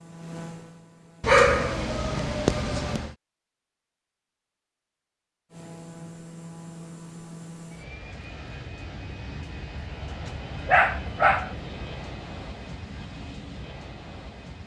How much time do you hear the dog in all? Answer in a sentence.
The dog can be heard for 3 seconds in total.